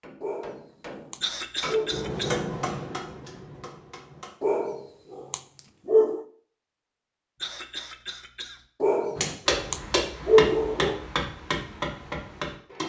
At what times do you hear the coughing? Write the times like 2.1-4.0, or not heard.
1.2-2.5, 7.4-8.6.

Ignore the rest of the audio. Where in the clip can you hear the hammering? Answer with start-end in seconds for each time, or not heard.
0.0-4.3, 9.2-12.8.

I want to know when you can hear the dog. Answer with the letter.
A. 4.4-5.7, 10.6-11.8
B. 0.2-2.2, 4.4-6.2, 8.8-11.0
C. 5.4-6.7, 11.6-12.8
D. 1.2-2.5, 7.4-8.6
B.